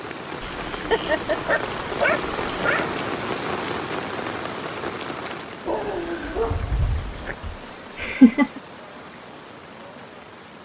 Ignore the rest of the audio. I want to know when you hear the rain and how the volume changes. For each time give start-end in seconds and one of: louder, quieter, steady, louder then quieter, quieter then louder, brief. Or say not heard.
0.0-10.6 quieter.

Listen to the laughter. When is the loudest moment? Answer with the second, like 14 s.
8 s.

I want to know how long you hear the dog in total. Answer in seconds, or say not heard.
4 s.